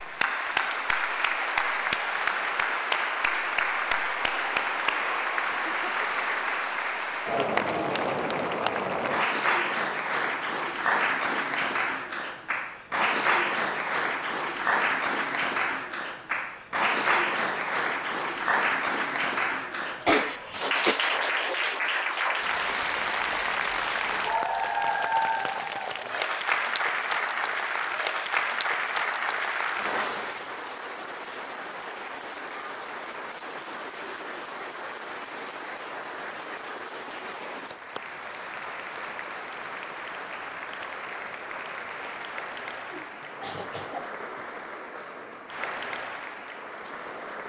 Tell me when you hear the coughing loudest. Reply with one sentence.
The loudest moment of the coughing is at 20 seconds.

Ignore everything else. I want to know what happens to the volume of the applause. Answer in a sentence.
The loudness of the applause goes down.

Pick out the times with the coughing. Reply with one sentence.
You can hear the coughing from 5.5 to 5.9 s, from 20.0 to 21.8 s and from 42.9 to 44.1 s.